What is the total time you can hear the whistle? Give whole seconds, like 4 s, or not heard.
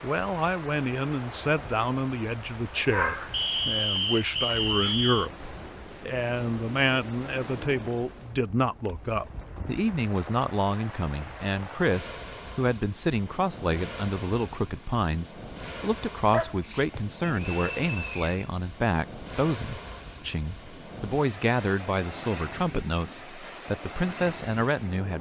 3 s.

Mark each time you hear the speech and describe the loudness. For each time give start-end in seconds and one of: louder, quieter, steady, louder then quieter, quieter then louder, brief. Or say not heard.
0.0-25.1 steady.